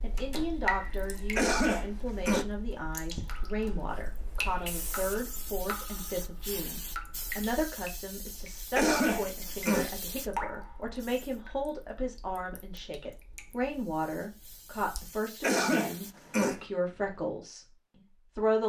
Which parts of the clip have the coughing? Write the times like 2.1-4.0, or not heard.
1.4-2.5, 8.8-9.9, 15.4-16.6.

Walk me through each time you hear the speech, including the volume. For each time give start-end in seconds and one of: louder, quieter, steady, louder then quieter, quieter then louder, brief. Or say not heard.
0.0-18.6 steady.